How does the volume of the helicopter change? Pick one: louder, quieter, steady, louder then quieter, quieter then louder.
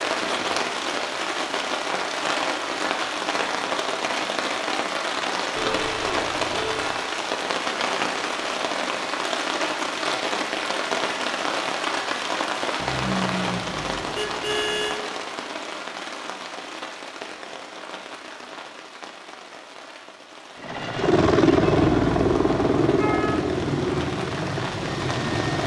quieter.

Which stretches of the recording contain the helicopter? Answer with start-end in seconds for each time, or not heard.
20.6-25.6.